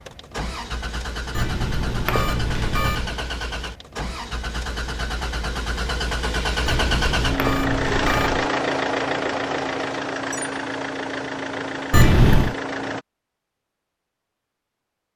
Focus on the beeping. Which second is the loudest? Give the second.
12 s.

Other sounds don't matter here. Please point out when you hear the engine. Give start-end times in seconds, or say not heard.
0.0-13.1.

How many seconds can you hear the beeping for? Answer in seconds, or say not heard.
4 s.